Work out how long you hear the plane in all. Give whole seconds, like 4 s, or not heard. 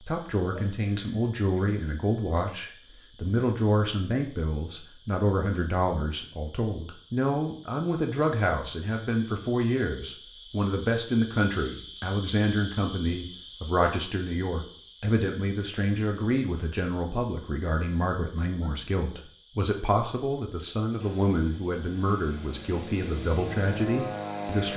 4 s.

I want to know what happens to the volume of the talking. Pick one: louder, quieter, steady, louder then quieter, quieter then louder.
steady.